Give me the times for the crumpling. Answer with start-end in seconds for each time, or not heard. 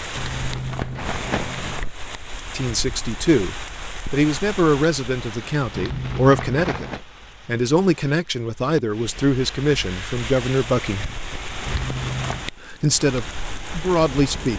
0.1-1.9, 5.8-7.0, 11.7-12.4.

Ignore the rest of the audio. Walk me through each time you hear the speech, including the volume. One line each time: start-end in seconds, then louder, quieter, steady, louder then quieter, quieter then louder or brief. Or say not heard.
2.5-11.1 steady
12.6-14.5 brief.